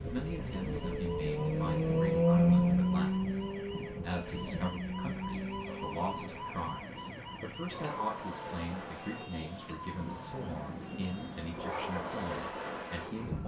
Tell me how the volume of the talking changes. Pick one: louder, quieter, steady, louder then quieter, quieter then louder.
steady.